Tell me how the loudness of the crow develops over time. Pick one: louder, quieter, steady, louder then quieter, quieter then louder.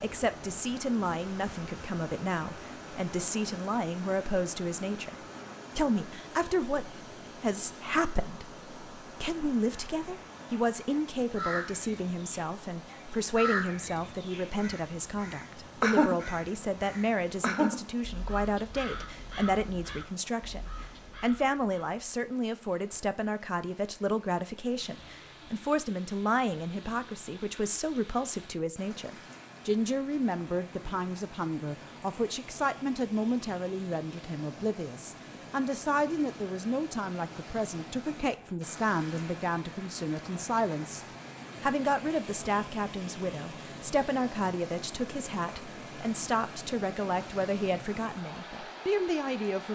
louder then quieter.